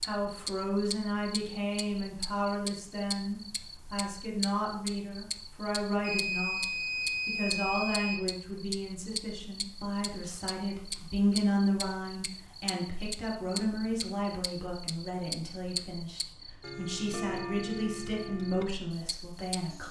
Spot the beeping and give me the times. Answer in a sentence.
The beeping can be heard from 6.0 to 8.3 s and from 10.5 to 11.1 s.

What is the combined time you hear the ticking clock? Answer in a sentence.
You can hear the ticking clock for 20 seconds altogether.